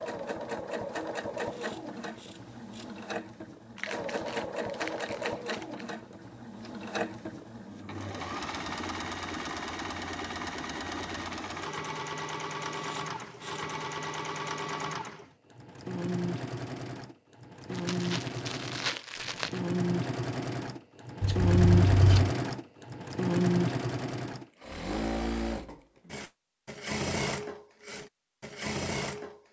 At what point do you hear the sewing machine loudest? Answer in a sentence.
The volume of the sewing machine peaks at 22 seconds.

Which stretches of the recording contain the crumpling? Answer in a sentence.
You can hear the crumpling from 3.8 to 5.8 s and from 17.7 to 19.6 s.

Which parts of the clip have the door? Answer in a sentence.
You can't hear the door here.